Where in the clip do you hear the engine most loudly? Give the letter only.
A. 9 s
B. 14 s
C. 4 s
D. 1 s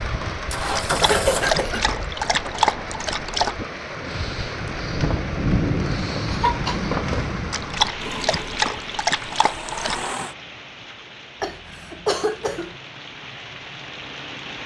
D.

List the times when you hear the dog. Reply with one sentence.
You can hear the dog from 0.8 to 3.5 s and from 7.5 to 10.1 s.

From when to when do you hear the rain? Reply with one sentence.
You can hear the rain from 0.0 to 14.6 s.